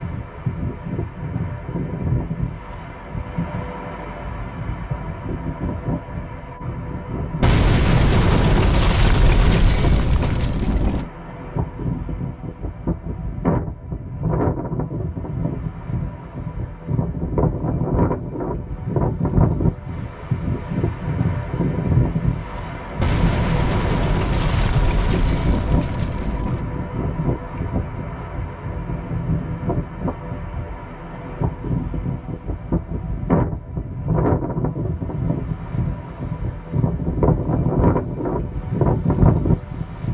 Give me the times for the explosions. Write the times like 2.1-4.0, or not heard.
7.4-11.1, 23.0-26.7.